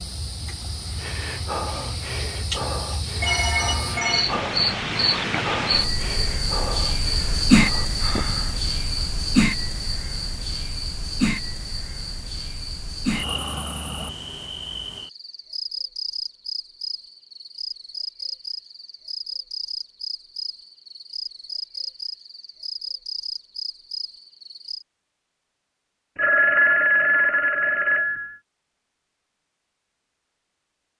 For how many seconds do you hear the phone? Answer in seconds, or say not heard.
3 s.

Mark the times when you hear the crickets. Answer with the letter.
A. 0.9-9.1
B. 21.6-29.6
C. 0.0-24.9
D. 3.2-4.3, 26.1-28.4
C.